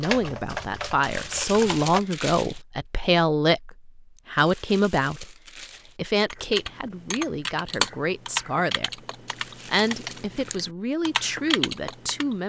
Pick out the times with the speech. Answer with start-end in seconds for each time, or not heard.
0.0-5.3, 6.0-9.0, 9.7-12.4.